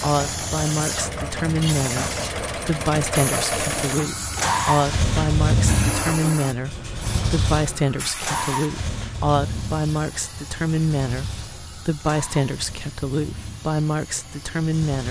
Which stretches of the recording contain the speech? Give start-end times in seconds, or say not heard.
0.0-15.0.